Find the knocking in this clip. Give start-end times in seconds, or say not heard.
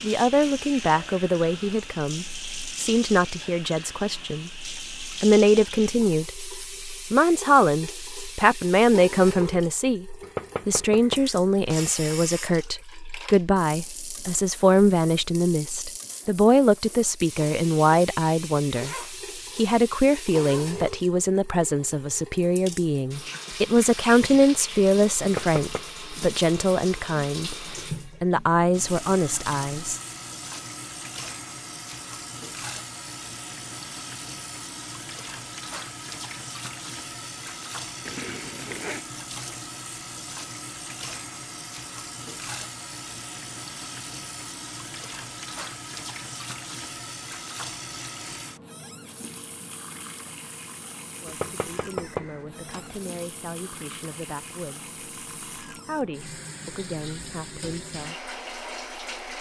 10.2-12.0, 25.2-25.9, 51.2-53.0.